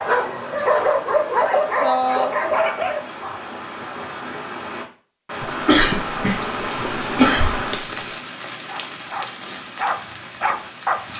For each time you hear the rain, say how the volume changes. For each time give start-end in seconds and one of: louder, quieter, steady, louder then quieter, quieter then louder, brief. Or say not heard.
0.0-11.1 louder then quieter.